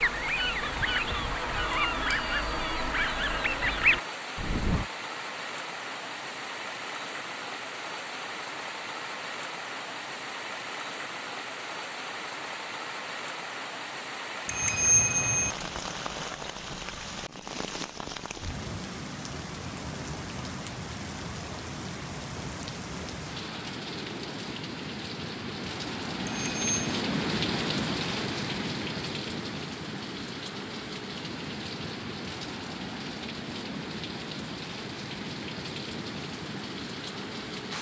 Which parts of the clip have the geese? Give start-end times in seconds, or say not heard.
0.0-4.8.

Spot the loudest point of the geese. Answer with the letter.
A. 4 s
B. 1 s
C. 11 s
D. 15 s
A.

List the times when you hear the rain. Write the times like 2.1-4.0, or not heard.
0.0-37.7.